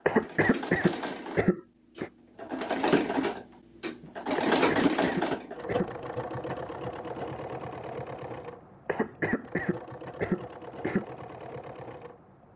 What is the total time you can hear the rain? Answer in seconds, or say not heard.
not heard.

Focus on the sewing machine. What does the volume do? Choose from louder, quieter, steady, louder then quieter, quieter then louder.
louder then quieter.